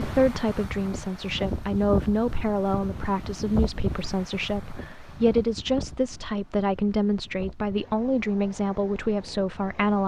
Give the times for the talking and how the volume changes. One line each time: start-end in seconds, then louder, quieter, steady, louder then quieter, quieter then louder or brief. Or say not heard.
0.0-10.0 steady.